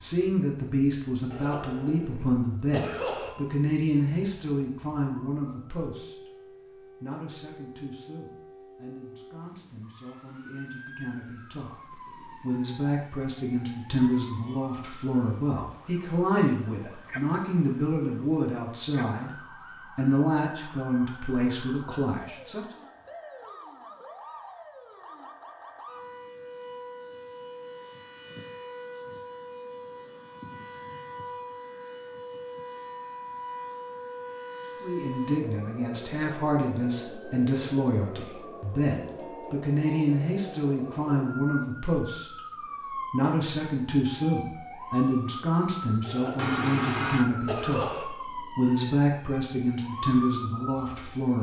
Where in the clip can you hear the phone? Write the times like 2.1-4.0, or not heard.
46.4-47.2.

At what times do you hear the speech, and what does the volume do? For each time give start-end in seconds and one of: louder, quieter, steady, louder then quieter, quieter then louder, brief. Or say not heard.
0.0-22.6 quieter then louder
34.8-51.3 steady.